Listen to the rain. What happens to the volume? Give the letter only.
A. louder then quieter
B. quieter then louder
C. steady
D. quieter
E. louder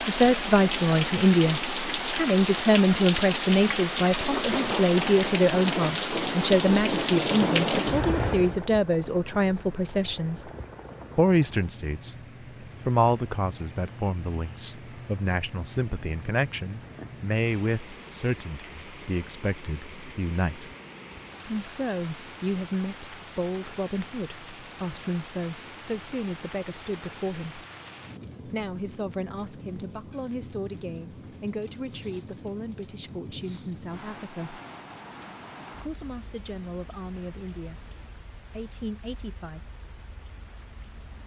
D.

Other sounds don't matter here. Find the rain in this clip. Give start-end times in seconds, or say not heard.
0.0-41.2.